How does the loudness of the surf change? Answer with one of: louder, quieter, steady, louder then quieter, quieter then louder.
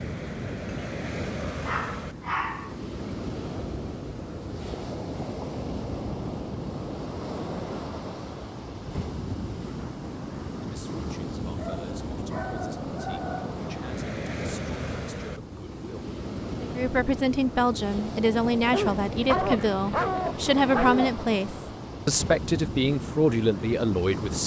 steady.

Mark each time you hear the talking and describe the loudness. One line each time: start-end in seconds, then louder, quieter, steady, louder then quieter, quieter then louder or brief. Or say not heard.
10.6-24.4 louder.